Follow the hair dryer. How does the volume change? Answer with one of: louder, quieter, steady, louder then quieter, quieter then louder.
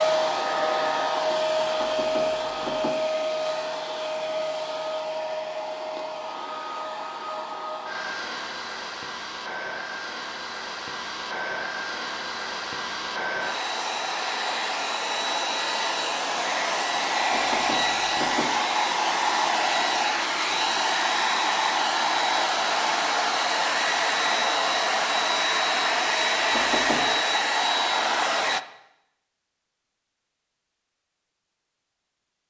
quieter then louder.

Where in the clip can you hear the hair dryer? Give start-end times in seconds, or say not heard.
0.0-28.6.